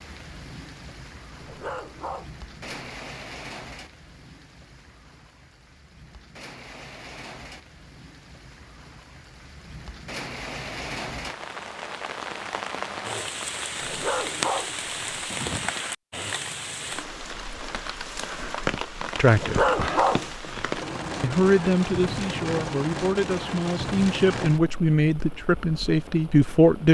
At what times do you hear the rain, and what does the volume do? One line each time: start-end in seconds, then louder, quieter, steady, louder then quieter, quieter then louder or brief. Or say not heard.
0.0-26.8 louder.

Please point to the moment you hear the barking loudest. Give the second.
20 s.